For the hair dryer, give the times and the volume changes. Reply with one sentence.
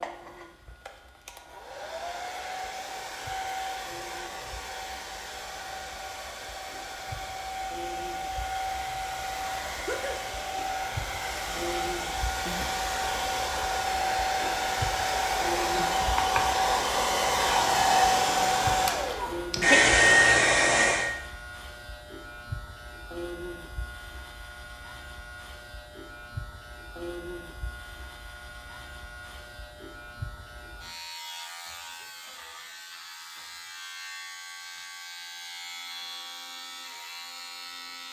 You can hear the hair dryer from 0.0 to 21.1 s, getting louder.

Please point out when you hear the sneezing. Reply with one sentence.
You can hear the sneezing from 9.8 to 10.2 s.